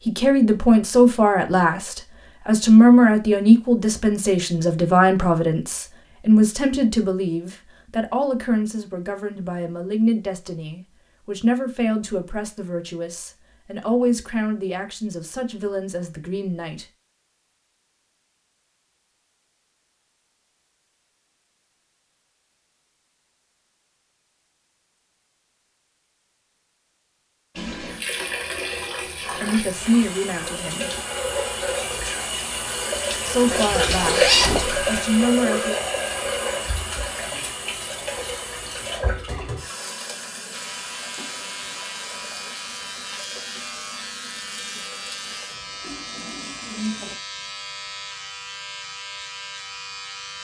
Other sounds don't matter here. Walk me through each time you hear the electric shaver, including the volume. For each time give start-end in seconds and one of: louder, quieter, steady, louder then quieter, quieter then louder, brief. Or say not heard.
40.5-50.3 steady.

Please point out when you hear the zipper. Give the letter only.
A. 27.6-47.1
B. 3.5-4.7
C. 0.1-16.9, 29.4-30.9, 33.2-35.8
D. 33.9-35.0
D.